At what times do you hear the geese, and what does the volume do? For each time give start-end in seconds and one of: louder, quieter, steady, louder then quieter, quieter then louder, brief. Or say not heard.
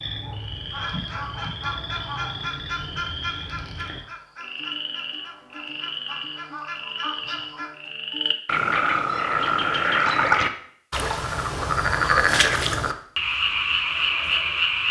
0.7-7.7 quieter then louder.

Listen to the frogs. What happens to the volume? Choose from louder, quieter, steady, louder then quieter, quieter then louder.
louder.